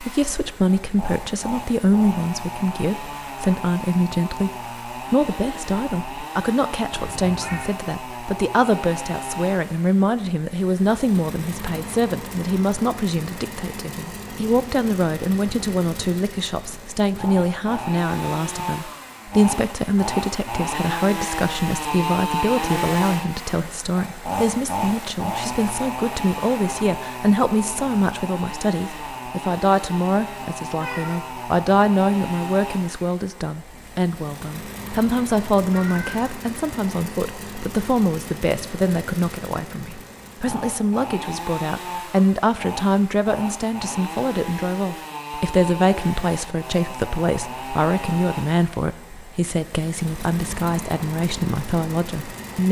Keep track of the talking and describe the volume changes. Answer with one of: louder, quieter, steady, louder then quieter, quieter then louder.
steady.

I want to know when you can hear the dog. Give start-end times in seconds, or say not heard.
not heard.